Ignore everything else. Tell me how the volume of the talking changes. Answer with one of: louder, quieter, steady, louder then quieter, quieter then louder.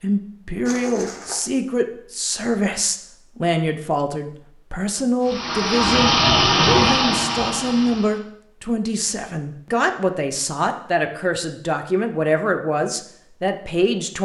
steady.